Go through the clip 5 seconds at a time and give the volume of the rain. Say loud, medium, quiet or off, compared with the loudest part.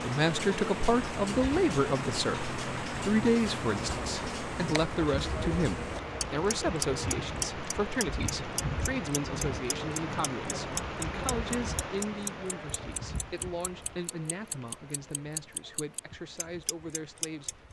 loud, loud, loud, quiet.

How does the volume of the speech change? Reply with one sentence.
The loudness of the speech goes down.